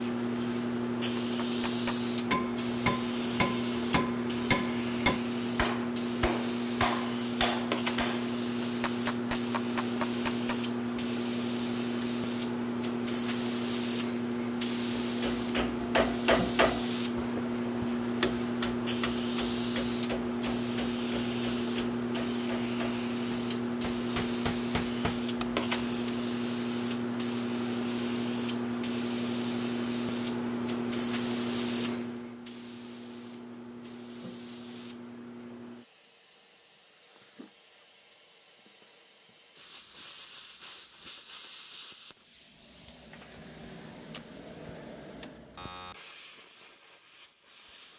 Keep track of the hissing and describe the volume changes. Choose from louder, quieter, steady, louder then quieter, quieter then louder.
quieter.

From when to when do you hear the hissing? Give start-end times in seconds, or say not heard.
0.0-47.9.